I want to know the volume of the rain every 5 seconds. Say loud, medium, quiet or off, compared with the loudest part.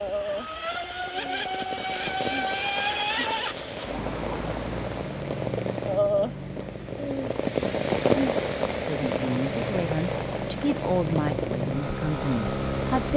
medium, loud, medium.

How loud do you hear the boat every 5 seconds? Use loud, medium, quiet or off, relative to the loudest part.
loud, medium, loud.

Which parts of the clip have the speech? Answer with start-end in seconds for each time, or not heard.
8.8-13.1.